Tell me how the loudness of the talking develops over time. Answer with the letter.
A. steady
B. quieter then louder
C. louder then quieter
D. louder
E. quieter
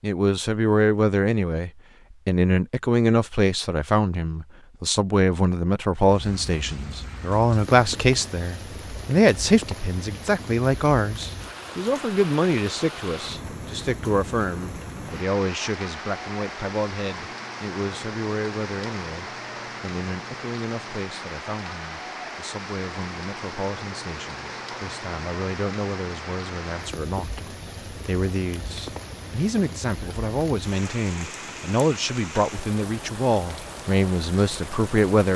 B.